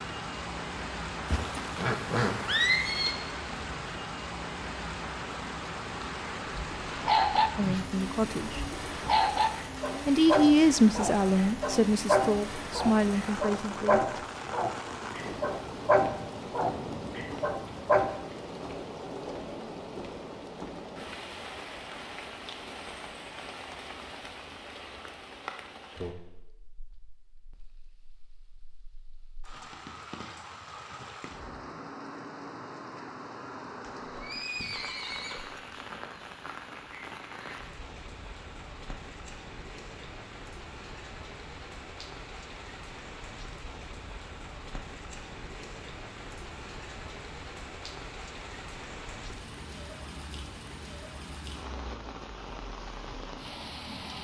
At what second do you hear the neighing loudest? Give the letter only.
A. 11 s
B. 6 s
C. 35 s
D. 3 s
D.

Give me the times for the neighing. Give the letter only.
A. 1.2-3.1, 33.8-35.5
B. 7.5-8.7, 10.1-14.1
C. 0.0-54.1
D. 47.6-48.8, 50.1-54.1
A.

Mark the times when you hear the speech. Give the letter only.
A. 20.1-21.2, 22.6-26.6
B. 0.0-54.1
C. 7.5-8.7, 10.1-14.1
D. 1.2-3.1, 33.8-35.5
C.